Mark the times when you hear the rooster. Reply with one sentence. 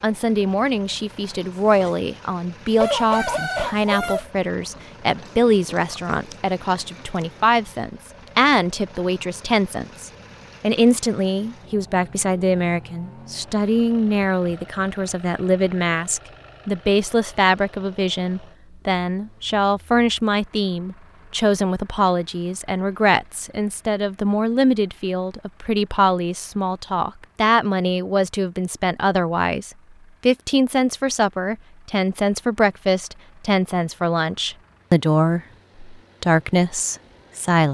The rooster can be heard from 2.8 to 4.2 s.